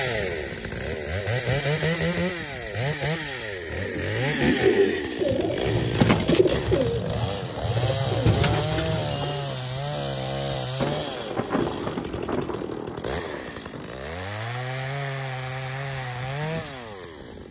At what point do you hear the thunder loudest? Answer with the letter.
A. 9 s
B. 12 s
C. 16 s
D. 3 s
B.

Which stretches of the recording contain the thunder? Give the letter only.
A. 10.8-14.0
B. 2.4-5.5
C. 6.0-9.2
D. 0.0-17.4
A.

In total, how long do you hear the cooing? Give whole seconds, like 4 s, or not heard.
6 s.